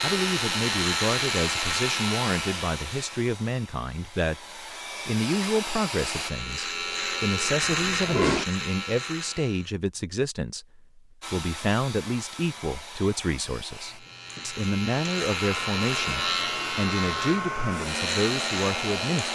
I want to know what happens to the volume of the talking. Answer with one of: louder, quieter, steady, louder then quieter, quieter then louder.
steady.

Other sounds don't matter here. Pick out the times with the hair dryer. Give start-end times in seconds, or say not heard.
0.0-6.3, 11.2-19.2.